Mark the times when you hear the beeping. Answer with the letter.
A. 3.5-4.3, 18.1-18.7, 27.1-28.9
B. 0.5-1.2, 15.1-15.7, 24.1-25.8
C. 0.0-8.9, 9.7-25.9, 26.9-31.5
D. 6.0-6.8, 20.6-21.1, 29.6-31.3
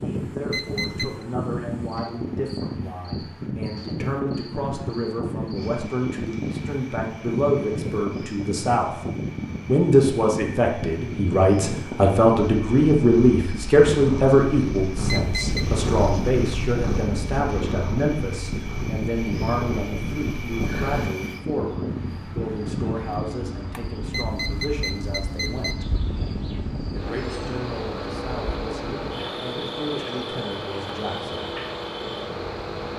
B.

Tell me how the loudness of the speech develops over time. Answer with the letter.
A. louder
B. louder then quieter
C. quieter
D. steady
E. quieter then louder
B.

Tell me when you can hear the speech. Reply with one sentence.
The speech can be heard from 0.0 to 8.9 s, from 9.7 to 25.9 s and from 26.9 to 31.5 s.